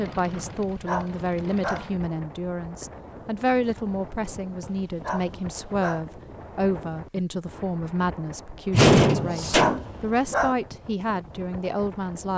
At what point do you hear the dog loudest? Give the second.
10 s.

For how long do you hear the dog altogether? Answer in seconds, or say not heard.
4 s.